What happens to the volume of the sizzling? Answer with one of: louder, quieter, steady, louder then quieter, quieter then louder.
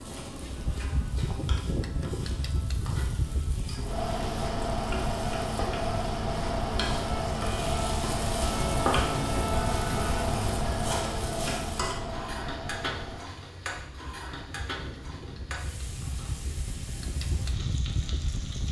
louder then quieter.